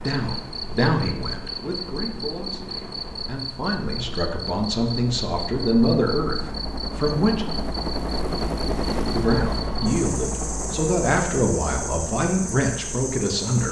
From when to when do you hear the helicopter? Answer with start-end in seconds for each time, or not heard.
0.0-13.6.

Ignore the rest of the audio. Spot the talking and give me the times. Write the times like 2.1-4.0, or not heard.
0.0-7.5, 9.1-13.6.